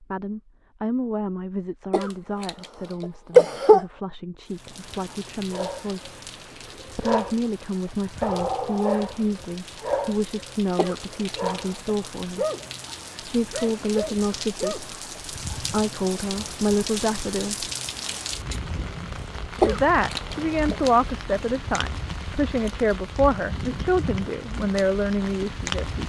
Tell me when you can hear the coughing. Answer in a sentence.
The coughing can be heard from 1.9 to 3.9 s, from 10.8 to 11.9 s and from 19.6 to 20.8 s.